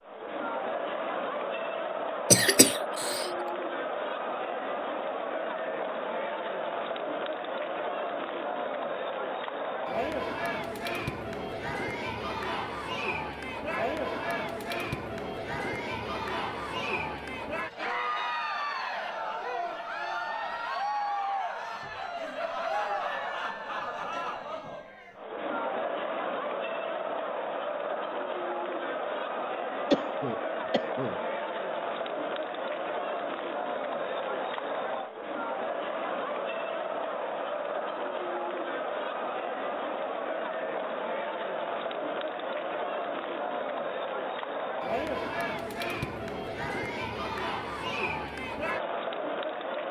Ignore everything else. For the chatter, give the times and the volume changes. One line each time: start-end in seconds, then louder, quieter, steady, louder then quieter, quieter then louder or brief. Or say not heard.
0.0-49.8 steady.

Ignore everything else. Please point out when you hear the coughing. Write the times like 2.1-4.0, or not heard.
2.3-3.3, 29.9-31.2.